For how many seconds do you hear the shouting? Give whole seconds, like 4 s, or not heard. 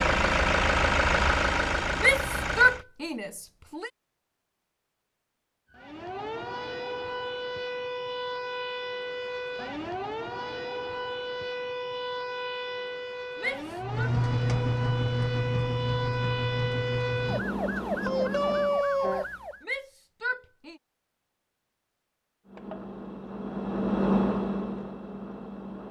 4 s.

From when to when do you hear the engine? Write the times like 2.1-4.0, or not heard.
0.0-2.9, 13.8-18.9, 22.4-25.8.